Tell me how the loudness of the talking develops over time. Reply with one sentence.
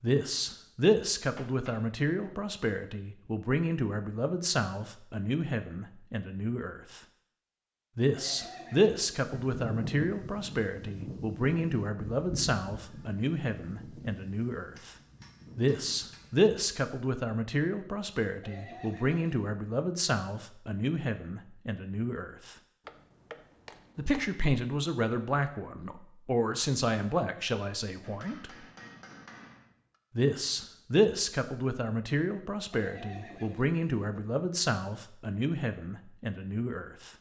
The volume of the talking stays about the same.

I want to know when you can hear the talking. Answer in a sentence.
The talking can be heard from 0.0 to 7.0 s, from 8.0 to 14.9 s, from 15.6 to 22.6 s, from 23.9 to 28.6 s and from 30.1 to 37.1 s.